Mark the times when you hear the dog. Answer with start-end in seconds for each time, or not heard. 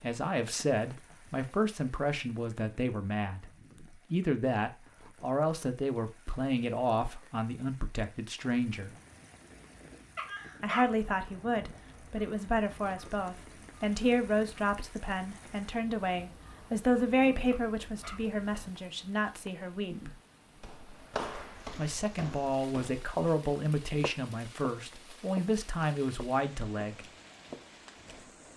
10.2-10.9, 17.5-18.2.